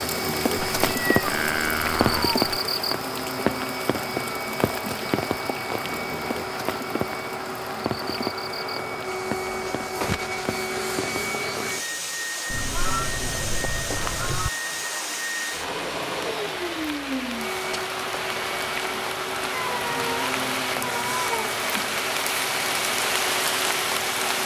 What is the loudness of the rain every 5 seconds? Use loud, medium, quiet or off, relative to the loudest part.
loud, medium, medium, medium, loud.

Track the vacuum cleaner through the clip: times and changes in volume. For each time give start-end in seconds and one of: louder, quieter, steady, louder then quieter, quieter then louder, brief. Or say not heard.
0.0-24.4 steady.